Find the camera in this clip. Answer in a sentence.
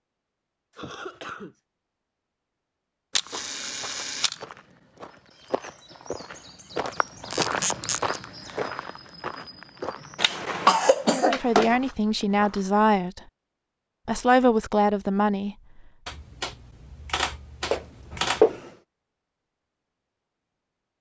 You can hear the camera from 3.1 to 4.5 s, from 7.3 to 8.2 s and from 16.1 to 18.4 s.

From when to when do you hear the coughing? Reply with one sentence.
You can hear the coughing from 0.8 to 1.6 s, from 10.2 to 11.8 s and from 17.6 to 18.6 s.